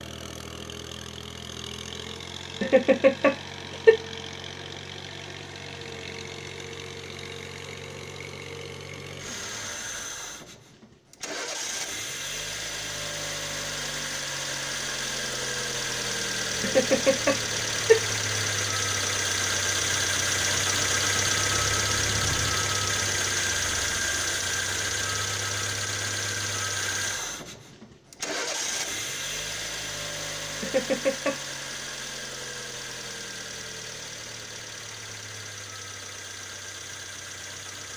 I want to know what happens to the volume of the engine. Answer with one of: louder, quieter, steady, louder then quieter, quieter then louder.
louder then quieter.